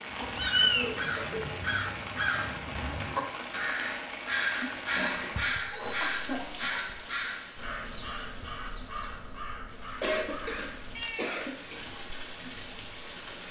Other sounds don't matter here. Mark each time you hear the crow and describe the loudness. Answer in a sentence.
You can hear the crow from 0.1 to 11.1 s, getting quieter.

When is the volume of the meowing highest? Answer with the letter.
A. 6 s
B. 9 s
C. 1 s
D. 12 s
C.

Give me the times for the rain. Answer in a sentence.
You can hear the rain from 0.0 to 13.4 s.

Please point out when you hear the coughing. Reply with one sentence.
You can hear the coughing from 1.0 to 1.4 s, from 4.5 to 6.8 s and from 10.0 to 11.8 s.